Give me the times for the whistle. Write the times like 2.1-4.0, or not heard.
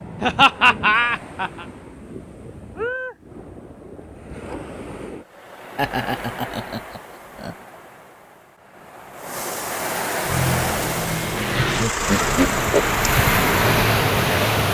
not heard.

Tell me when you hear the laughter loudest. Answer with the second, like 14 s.
1 s.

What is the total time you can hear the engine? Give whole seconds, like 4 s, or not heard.
4 s.